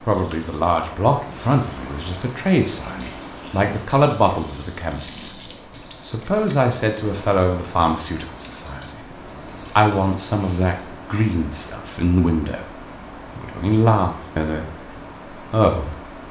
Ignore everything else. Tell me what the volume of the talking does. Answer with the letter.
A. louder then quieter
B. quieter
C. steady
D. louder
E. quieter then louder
C.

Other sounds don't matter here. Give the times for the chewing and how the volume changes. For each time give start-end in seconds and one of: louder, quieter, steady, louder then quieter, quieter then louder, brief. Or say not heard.
not heard.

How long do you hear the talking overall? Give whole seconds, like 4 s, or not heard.
16 s.